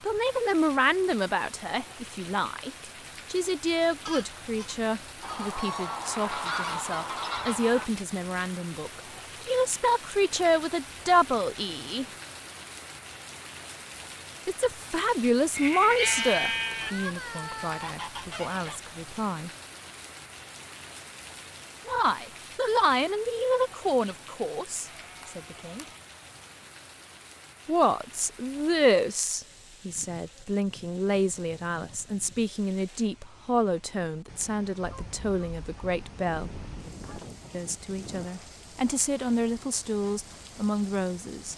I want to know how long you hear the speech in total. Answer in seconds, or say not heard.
34 s.